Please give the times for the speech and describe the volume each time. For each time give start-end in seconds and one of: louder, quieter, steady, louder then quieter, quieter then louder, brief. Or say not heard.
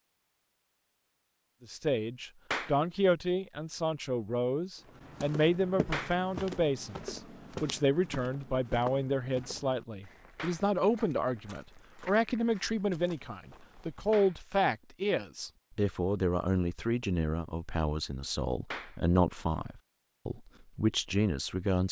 1.6-21.8 steady.